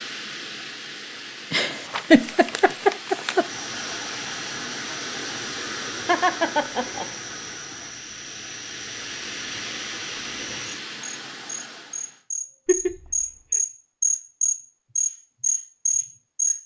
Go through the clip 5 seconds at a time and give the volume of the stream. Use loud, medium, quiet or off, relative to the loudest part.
loud, loud, loud, off.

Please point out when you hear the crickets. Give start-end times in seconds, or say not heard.
3.5-16.6.